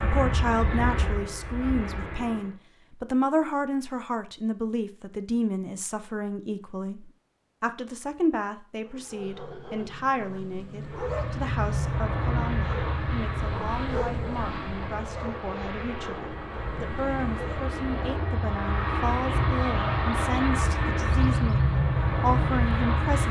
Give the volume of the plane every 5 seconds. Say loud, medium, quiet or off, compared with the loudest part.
medium, off, medium, medium, loud.